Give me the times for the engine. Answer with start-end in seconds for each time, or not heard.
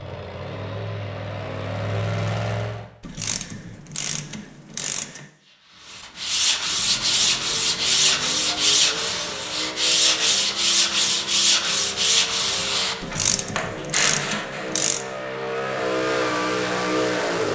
0.0-2.9, 6.7-17.5.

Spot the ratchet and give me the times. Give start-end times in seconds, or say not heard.
3.0-5.2, 13.0-15.1.